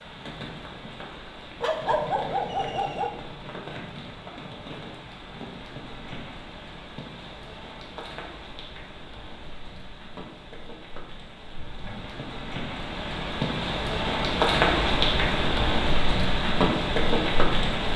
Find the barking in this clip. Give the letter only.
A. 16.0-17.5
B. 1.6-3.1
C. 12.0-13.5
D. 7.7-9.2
B.